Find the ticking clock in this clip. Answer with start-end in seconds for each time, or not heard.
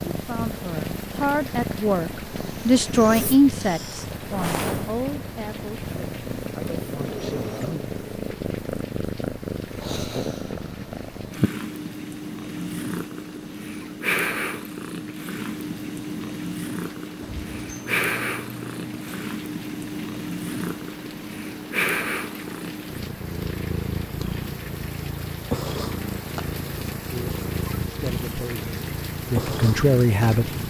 not heard.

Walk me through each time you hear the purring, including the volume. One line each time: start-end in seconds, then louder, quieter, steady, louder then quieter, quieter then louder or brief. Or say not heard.
0.0-30.6 steady.